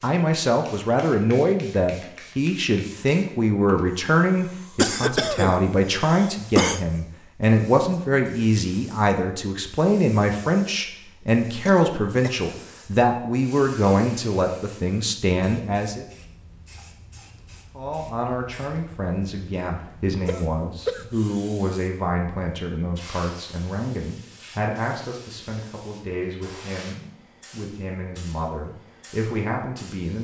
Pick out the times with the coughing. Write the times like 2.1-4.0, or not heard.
4.8-6.8, 11.7-12.7, 20.2-21.1.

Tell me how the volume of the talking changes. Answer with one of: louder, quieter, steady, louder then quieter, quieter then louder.
quieter.